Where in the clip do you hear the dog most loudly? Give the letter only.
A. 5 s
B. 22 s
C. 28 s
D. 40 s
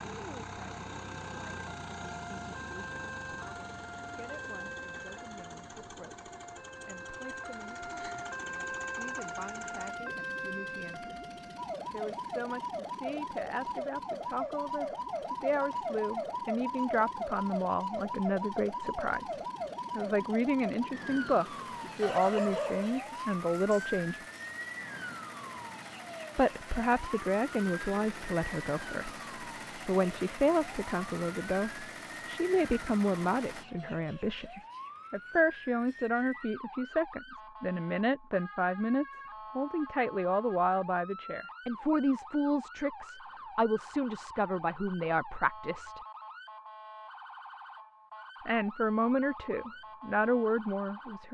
B.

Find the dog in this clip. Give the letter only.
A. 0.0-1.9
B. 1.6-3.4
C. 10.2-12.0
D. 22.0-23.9
D.